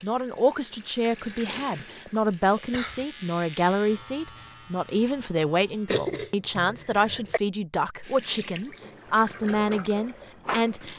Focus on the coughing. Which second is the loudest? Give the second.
6 s.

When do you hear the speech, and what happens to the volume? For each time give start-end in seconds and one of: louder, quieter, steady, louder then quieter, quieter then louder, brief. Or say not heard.
0.0-10.9 steady.